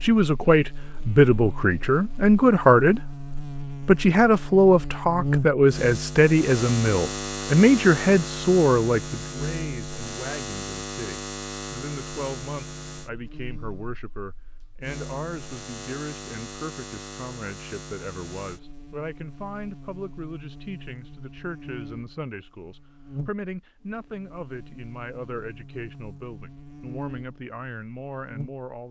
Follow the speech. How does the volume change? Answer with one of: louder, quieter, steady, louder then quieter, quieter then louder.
quieter.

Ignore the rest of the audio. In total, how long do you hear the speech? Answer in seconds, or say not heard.
28 s.